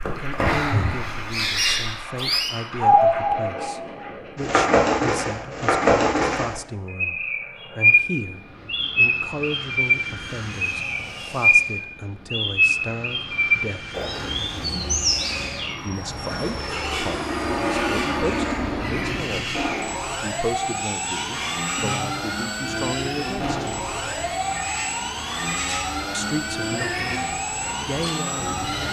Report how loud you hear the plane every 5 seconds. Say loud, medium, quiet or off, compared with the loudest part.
medium, quiet, medium, loud, loud, loud.